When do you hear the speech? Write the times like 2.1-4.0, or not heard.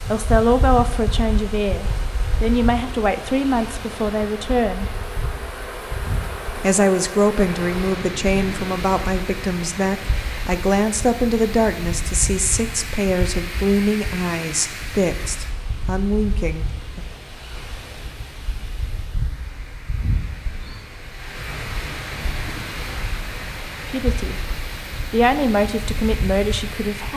0.1-4.8, 6.6-17.1, 23.9-24.4, 25.1-27.1.